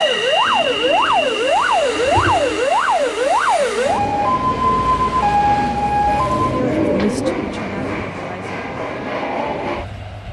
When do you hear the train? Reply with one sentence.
The train can be heard from 0.0 to 10.2 s.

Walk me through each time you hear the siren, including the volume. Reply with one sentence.
You can hear the siren from 0.0 to 6.7 s, at a steady volume.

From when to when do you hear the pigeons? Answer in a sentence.
You can hear the pigeons from 0.5 to 2.6 s and from 6.6 to 8.1 s.